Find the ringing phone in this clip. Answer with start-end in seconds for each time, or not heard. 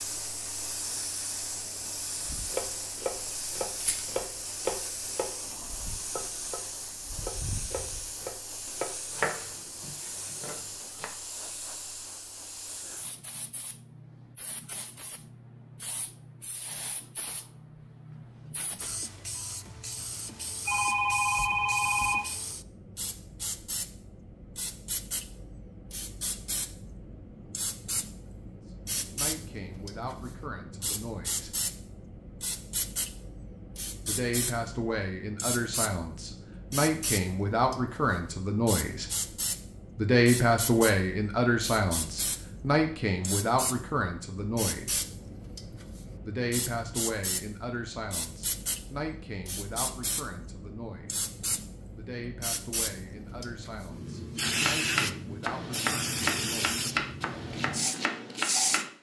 20.6-22.2.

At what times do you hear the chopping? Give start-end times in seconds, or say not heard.
2.2-11.1, 54.5-58.9.